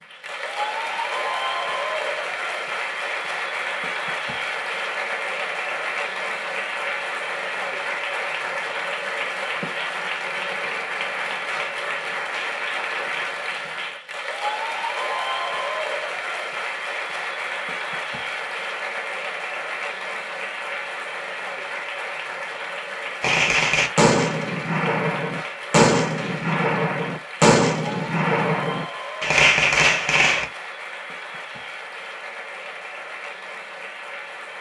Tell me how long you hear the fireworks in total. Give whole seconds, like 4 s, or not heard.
7 s.